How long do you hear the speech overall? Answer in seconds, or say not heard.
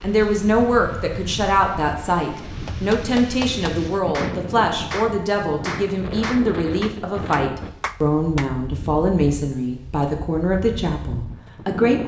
12 s.